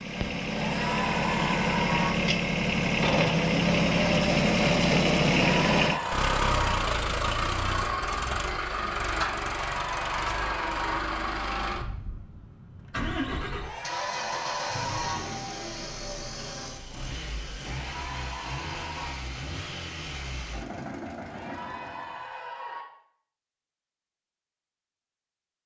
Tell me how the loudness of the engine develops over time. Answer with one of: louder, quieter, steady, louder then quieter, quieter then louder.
quieter.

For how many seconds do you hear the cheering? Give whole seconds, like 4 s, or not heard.
9 s.